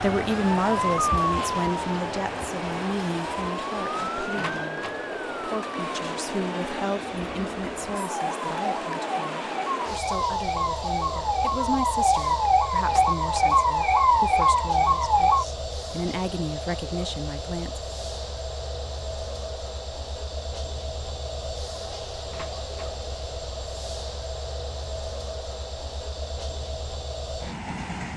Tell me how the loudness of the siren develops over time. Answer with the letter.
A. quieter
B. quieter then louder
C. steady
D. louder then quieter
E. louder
B.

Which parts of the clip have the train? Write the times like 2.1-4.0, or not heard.
0.0-28.1.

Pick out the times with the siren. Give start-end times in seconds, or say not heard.
0.0-15.4.